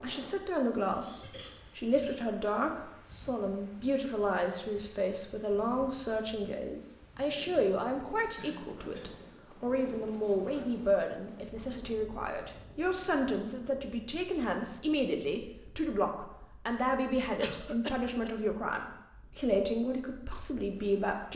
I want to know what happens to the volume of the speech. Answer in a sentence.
The loudness of the speech stays about the same.